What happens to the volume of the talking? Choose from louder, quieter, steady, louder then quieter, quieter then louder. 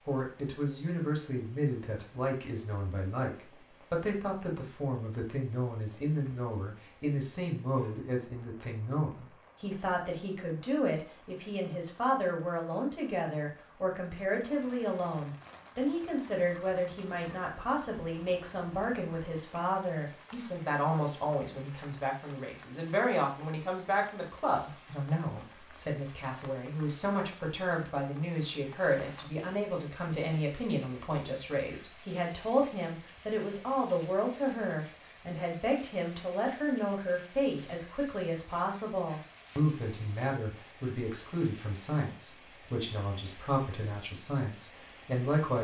steady.